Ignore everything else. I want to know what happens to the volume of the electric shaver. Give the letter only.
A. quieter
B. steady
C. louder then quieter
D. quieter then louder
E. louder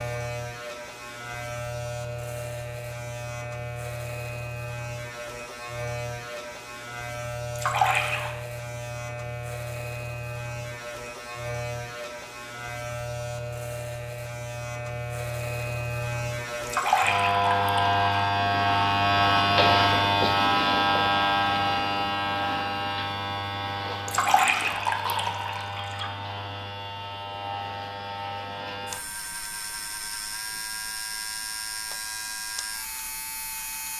C.